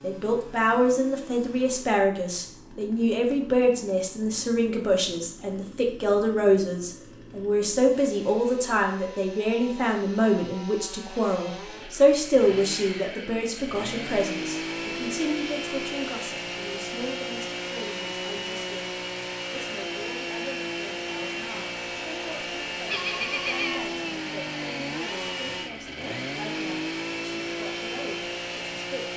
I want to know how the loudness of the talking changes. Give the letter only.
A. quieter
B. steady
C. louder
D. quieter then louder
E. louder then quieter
A.